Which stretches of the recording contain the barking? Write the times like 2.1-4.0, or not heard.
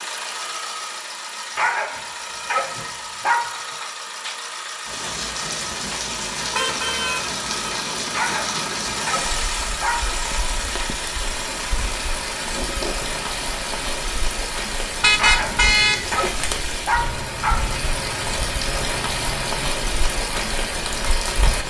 1.6-3.9, 8.1-10.1, 15.2-17.8.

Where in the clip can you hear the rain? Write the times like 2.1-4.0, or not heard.
4.8-21.6.